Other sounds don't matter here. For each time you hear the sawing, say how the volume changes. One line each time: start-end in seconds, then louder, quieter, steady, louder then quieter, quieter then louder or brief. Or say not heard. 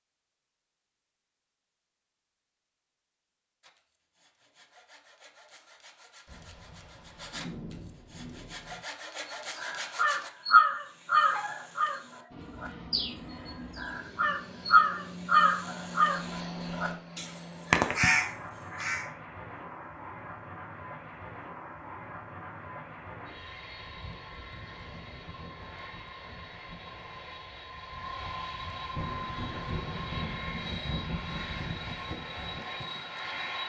3.6-10.3 louder.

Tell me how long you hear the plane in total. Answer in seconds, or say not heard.
21 s.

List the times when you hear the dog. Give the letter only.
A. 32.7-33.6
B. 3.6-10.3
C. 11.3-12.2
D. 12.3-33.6
C.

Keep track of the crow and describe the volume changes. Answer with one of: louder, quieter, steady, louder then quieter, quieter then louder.
quieter then louder.